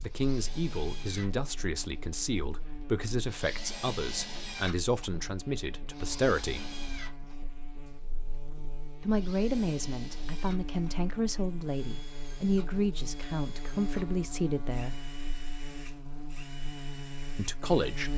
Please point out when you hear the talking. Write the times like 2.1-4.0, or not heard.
0.0-6.7, 9.0-15.0, 17.4-18.1.